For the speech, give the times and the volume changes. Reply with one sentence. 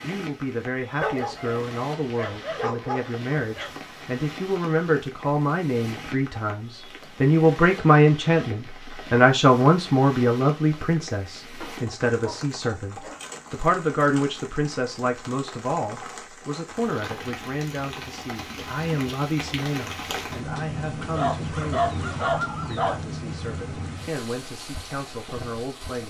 You can hear the speech from 0.0 to 26.0 s, getting louder then quieter.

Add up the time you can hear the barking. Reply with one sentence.
The barking can be heard for 6 seconds in total.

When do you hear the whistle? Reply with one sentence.
The whistle can't be heard in this clip.